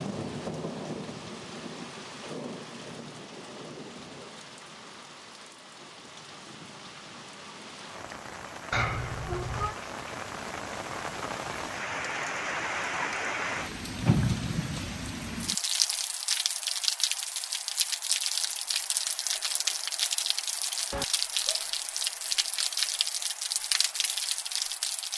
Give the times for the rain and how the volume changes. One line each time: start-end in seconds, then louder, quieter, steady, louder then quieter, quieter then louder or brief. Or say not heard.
0.0-25.1 louder.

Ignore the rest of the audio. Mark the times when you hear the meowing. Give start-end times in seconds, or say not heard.
8.7-9.8, 20.9-21.8.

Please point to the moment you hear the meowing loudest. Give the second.
9 s.